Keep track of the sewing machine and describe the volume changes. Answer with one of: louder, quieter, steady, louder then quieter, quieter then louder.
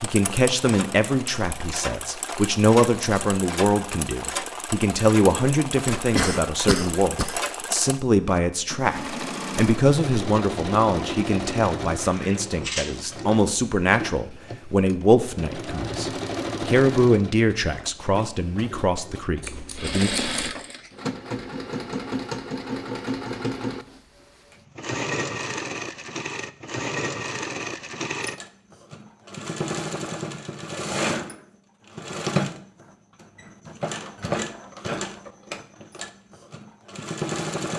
steady.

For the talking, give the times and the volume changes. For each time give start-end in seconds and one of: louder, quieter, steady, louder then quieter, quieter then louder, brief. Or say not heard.
0.0-20.1 steady.